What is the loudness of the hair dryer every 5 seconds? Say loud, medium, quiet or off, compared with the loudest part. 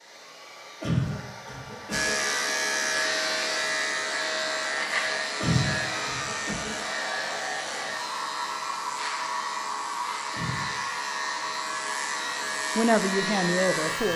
medium, loud, loud.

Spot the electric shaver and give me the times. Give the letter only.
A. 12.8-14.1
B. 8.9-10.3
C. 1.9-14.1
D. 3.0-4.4
C.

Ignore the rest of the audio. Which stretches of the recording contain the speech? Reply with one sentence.
The speech can be heard from 12.8 to 14.1 s.